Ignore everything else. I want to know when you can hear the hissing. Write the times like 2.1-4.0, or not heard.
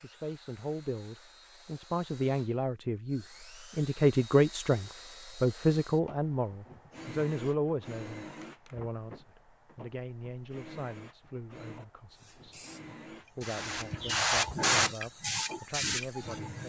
12.2-16.6.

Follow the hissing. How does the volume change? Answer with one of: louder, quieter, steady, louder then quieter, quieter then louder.
louder then quieter.